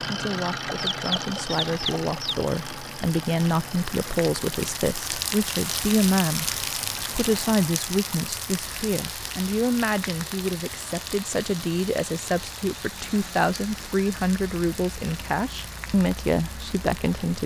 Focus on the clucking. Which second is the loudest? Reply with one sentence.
The volume of the clucking peaks at 1 second.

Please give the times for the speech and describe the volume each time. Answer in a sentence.
The speech can be heard from 0.0 to 17.4 s, at a steady volume.